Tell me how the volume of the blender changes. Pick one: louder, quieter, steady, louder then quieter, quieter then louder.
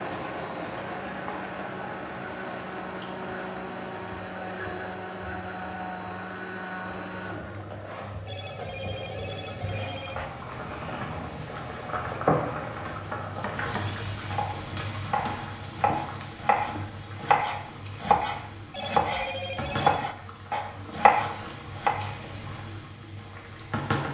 steady.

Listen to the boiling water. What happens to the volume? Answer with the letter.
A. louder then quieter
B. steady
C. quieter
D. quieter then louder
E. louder
A.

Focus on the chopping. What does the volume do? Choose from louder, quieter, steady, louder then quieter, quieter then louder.
louder.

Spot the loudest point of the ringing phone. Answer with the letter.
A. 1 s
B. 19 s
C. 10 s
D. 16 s
B.